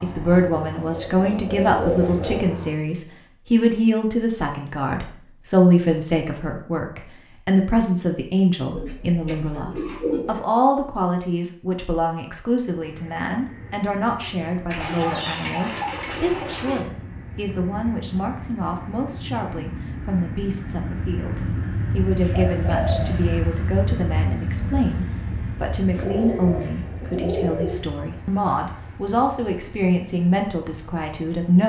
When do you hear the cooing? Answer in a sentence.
You can hear the cooing from 0.5 to 2.4 s, from 8.7 to 10.4 s, from 14.7 to 16.9 s, from 21.4 to 23.3 s and from 25.9 to 27.8 s.